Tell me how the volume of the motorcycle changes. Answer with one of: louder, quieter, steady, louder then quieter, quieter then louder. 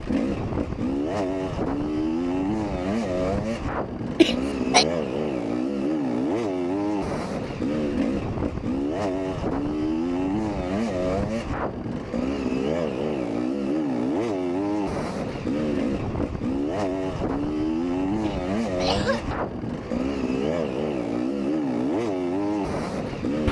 steady.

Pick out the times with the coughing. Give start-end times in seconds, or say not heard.
4.2-4.8, 18.2-19.4.